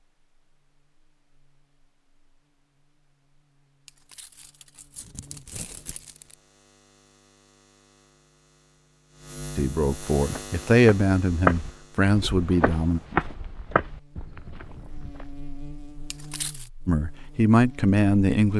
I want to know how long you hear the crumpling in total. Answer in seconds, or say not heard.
3 s.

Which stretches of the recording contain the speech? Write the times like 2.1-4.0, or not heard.
9.6-13.0, 16.9-18.5.